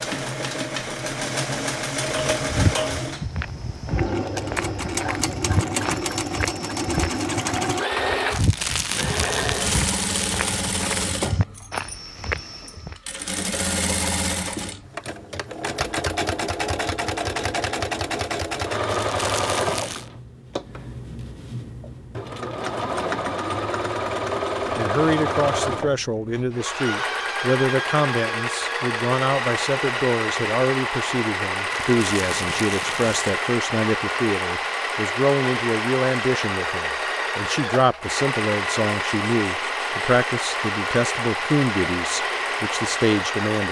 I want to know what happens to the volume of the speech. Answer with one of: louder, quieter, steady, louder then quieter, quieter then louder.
steady.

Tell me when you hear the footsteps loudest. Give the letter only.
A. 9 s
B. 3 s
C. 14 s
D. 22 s
B.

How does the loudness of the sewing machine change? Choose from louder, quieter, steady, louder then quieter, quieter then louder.
steady.